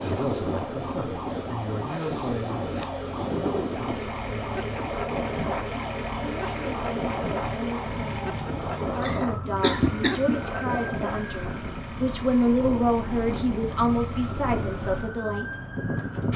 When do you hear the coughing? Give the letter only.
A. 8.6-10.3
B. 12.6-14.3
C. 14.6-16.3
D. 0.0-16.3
A.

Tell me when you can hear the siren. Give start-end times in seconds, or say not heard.
0.0-16.3.